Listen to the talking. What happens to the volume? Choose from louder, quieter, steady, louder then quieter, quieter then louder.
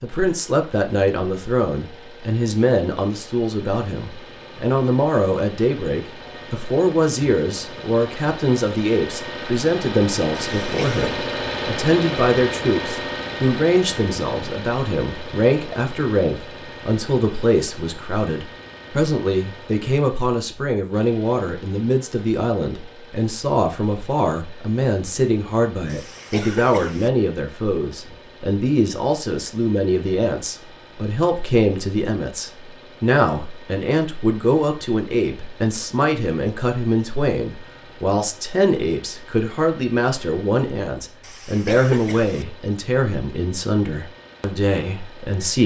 steady.